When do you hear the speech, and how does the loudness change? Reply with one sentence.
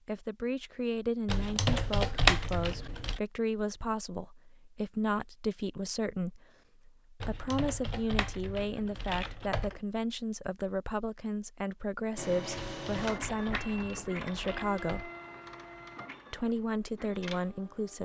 The speech can be heard from 0.1 to 15.1 s, at a steady volume; and briefly from 16.3 to 18.0 s.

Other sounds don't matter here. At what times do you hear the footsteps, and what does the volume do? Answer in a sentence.
You can't hear the footsteps here.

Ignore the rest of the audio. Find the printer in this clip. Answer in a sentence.
The printer can be heard from 12.2 to 18.0 s.